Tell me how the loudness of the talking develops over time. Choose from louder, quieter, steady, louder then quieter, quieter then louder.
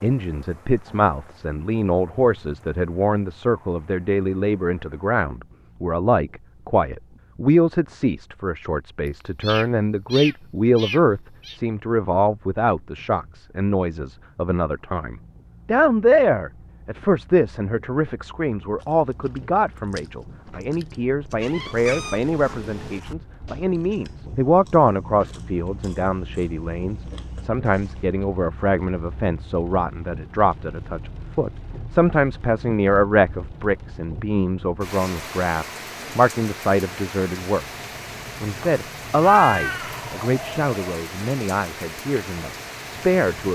steady.